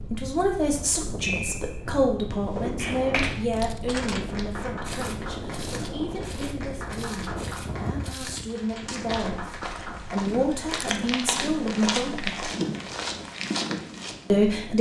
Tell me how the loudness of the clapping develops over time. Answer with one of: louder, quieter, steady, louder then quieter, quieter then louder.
quieter.